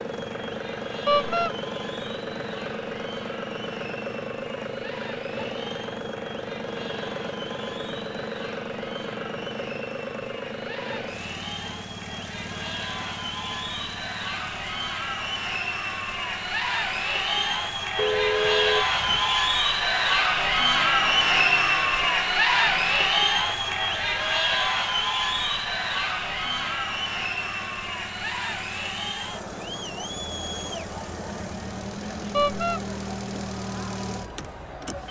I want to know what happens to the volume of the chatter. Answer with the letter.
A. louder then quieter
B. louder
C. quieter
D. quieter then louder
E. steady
A.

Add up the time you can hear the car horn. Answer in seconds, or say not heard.
2 s.